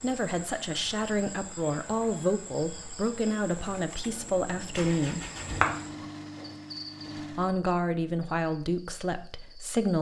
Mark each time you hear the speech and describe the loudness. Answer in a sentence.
You can hear the speech from 0.0 to 5.2 s, at a steady volume; and briefly from 7.3 to 9.9 s.